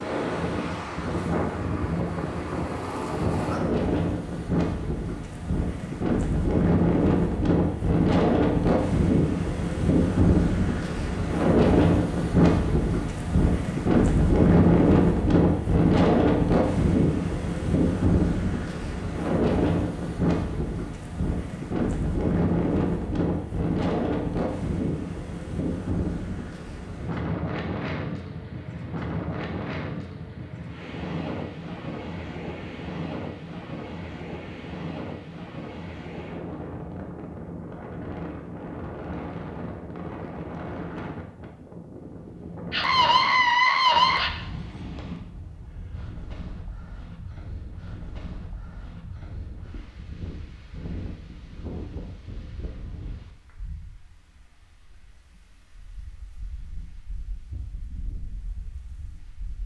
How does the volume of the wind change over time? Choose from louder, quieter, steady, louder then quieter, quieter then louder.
quieter.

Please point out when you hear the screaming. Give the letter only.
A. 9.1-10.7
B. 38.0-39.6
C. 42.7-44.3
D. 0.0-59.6
C.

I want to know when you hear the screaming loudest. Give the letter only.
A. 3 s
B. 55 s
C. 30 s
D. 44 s
D.